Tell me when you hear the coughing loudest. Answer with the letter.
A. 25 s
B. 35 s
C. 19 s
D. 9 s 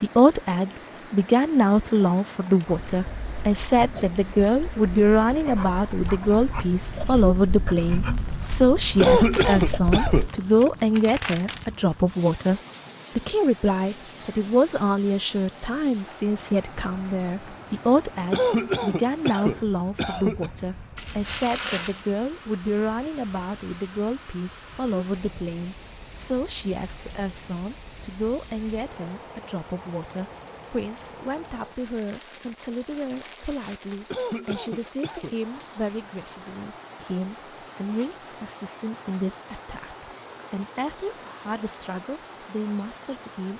D.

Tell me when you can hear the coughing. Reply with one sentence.
You can hear the coughing from 8.9 to 10.7 s, from 18.3 to 20.5 s and from 34.1 to 35.4 s.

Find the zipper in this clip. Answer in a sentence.
The zipper can't be heard in this clip.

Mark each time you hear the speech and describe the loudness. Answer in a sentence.
You can hear the speech from 0.0 to 43.5 s, getting quieter.